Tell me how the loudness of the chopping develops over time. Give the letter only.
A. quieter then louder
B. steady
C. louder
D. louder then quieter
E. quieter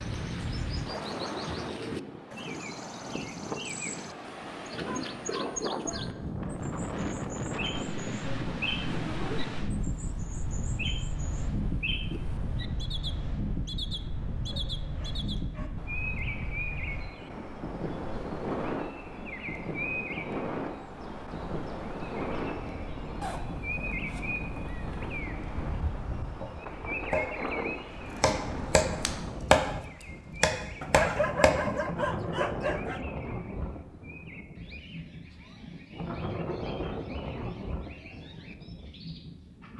D.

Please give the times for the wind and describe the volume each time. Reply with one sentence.
The wind can be heard from 0.0 to 39.7 s, at a steady volume.